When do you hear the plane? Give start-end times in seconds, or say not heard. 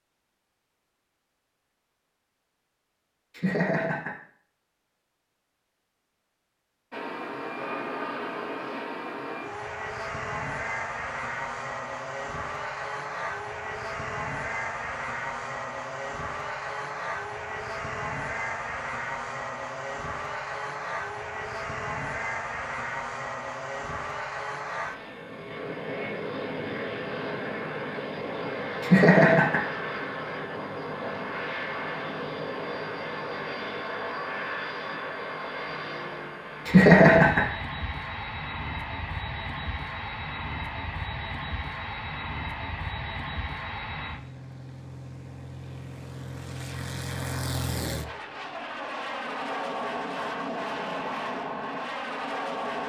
6.9-52.8.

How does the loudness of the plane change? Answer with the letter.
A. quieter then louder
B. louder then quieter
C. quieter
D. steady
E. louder
D.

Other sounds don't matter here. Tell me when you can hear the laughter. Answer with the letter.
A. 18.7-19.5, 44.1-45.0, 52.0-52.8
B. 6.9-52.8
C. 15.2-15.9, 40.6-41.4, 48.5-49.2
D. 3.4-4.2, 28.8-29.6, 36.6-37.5
D.